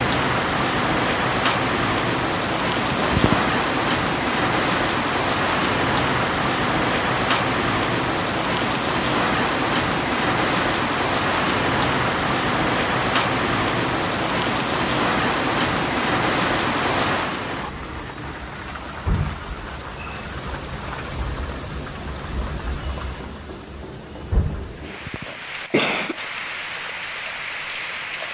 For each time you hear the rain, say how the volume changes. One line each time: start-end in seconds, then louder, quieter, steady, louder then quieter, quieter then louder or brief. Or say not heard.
0.0-28.2 quieter.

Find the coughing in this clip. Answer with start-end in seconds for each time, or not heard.
2.9-3.5, 24.8-26.1.